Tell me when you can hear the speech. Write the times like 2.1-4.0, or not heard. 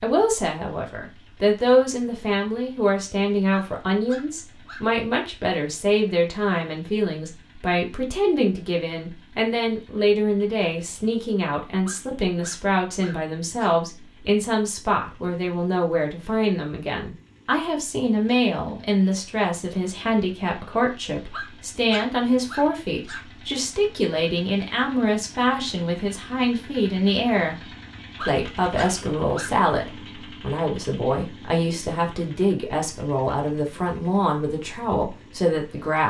0.0-27.6, 28.2-36.0.